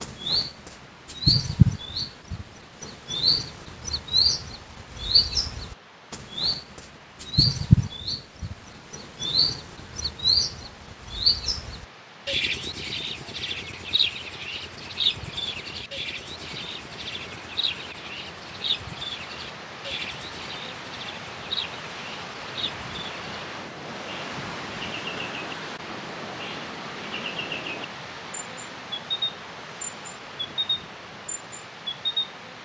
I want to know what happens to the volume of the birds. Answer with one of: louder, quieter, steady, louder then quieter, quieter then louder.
quieter.